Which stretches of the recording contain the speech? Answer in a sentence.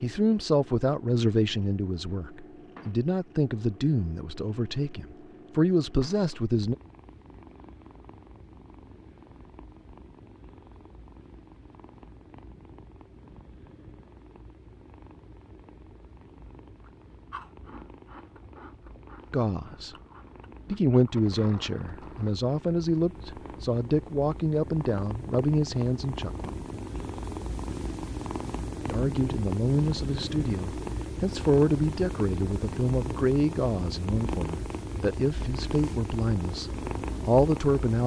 You can hear the speech from 0.0 to 6.8 s, from 19.3 to 19.9 s, from 20.6 to 26.6 s and from 28.9 to 38.0 s.